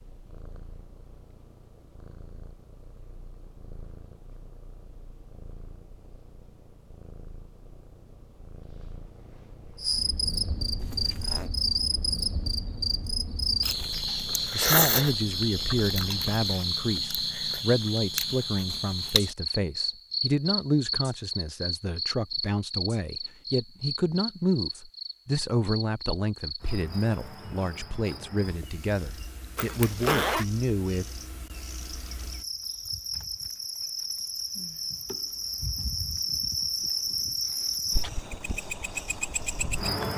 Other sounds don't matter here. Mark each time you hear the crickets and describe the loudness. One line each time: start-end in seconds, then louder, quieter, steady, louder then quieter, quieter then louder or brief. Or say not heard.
9.8-40.1 quieter then louder.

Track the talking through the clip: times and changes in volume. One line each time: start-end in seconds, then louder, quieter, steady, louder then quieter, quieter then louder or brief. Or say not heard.
14.5-31.1 steady.